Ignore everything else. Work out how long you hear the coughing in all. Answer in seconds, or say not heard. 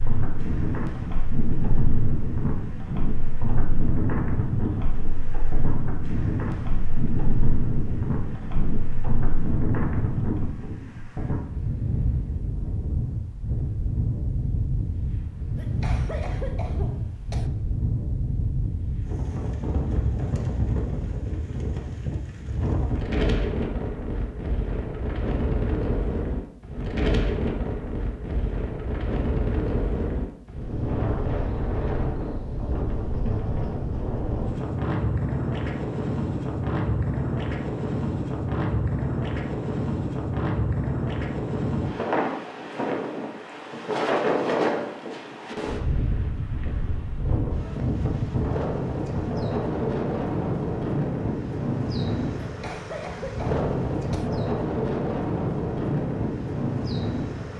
4 s.